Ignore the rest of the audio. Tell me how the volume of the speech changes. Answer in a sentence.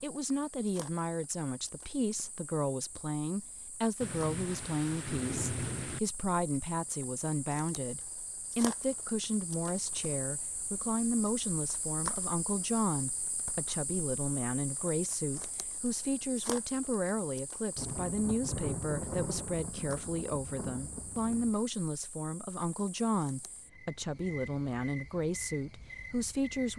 The loudness of the speech stays about the same.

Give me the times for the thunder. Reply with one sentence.
The thunder can be heard from 4.0 to 6.0 s and from 17.8 to 21.6 s.